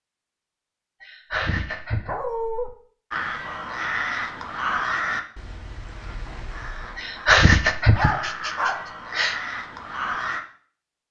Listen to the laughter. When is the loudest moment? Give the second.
7 s.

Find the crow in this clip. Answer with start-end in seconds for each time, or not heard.
3.1-10.4.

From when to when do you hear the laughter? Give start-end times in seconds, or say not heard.
1.0-2.1, 7.0-9.3.